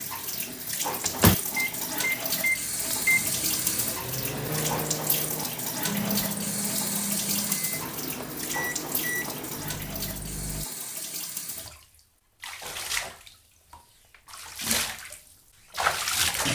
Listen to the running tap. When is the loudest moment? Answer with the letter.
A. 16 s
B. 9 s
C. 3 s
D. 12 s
A.